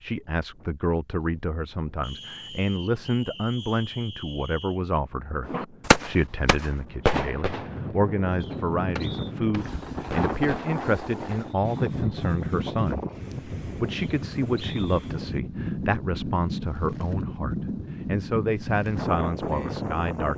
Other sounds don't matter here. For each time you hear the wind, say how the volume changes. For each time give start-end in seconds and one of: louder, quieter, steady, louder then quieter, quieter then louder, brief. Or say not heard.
0.0-20.3 louder.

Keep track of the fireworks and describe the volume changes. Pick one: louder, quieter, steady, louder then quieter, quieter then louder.
quieter then louder.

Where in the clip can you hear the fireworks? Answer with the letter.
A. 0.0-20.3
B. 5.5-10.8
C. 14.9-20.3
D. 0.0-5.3
B.